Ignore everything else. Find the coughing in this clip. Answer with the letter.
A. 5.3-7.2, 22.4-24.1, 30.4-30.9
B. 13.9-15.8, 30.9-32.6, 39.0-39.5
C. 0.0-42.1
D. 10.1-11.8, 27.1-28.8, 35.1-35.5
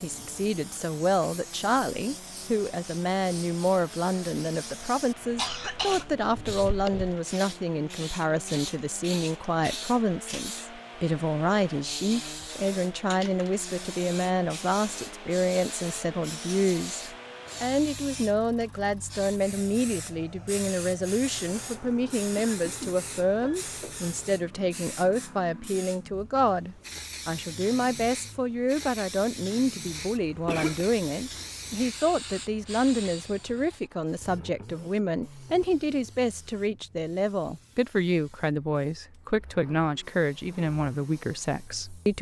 A.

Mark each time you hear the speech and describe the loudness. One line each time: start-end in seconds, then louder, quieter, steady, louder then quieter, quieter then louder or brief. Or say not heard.
0.0-42.1 steady.